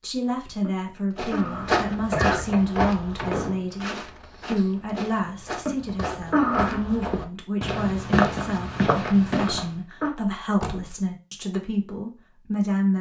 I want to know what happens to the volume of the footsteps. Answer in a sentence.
The loudness of the footsteps goes down, then up.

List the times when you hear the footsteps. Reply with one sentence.
You can hear the footsteps from 1.1 to 9.7 s.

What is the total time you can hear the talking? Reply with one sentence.
You can hear the talking for 13 seconds altogether.